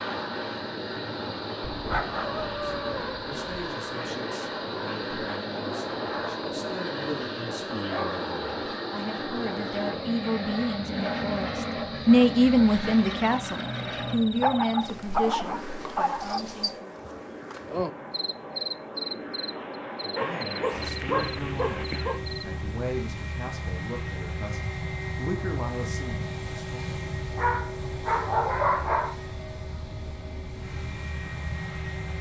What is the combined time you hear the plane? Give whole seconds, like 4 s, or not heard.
32 s.